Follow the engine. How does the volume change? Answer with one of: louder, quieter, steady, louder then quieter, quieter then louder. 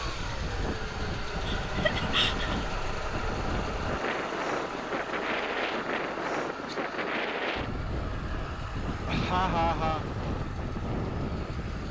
quieter.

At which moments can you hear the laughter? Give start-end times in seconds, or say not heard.
1.4-2.6, 9.1-10.1.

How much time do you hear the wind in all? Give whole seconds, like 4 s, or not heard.
12 s.